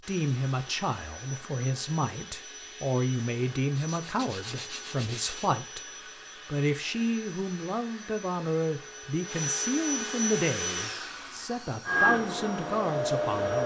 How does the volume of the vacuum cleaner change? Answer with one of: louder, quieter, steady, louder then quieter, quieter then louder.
louder.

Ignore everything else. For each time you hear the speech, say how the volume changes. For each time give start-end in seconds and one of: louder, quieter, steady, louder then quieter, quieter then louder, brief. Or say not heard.
0.1-13.6 steady.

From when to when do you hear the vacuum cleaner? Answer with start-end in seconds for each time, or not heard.
0.0-13.6.